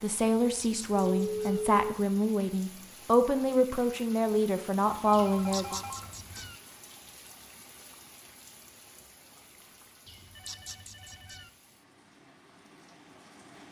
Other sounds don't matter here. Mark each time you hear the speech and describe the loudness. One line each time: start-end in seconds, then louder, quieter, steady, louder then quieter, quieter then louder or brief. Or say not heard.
0.0-5.8 steady.